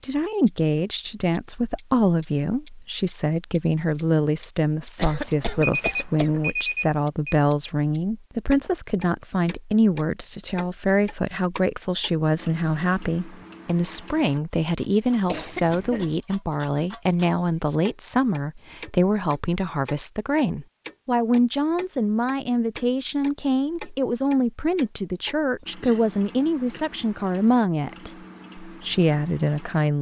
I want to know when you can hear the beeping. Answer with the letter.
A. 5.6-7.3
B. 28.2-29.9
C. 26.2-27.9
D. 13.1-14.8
A.